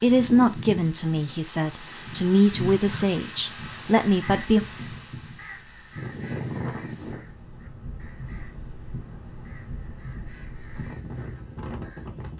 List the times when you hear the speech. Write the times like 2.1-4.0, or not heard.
0.0-4.7.